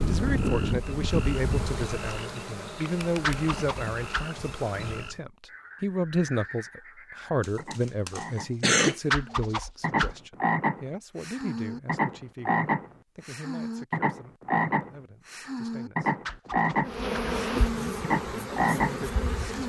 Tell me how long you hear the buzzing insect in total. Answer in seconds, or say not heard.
8 s.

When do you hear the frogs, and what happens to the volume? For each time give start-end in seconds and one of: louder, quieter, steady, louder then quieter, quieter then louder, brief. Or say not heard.
0.2-19.6 louder.